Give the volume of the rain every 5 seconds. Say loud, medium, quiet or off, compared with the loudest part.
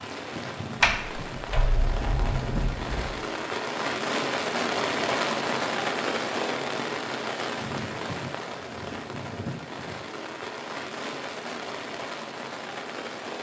loud, loud, medium.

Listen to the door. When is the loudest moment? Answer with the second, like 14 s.
1 s.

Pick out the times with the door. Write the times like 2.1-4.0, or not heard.
0.8-3.2.